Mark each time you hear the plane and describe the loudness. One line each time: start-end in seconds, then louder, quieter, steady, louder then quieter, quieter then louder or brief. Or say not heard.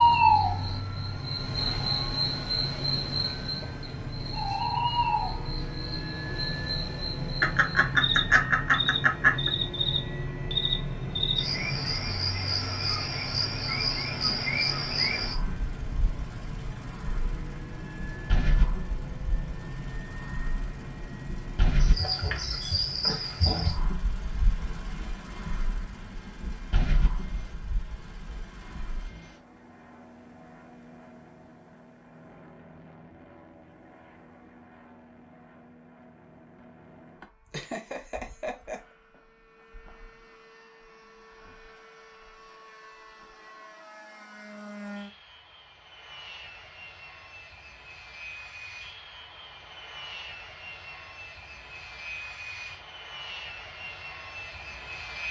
0.0-55.2 quieter then louder.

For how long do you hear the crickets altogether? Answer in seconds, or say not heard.
29 s.